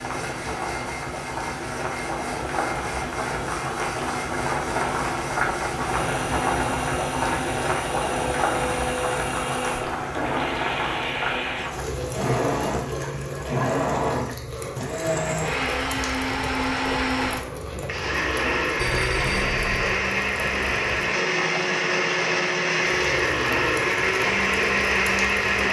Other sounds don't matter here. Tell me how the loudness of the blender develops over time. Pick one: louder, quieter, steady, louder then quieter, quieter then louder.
louder.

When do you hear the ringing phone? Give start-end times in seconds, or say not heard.
18.8-19.9.